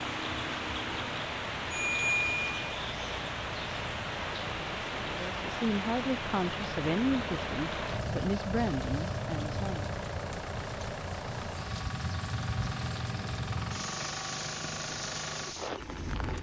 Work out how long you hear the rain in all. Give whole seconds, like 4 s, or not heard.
16 s.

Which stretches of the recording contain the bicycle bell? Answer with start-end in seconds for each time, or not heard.
1.7-2.6.